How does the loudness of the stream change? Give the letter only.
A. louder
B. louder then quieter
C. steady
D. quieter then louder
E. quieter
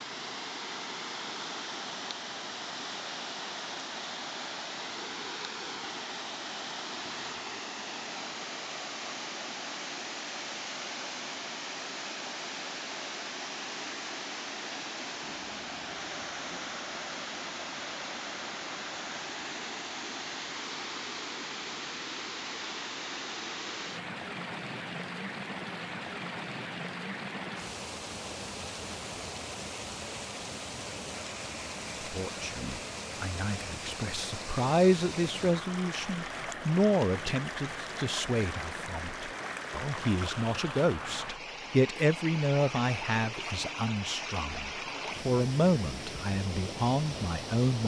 C.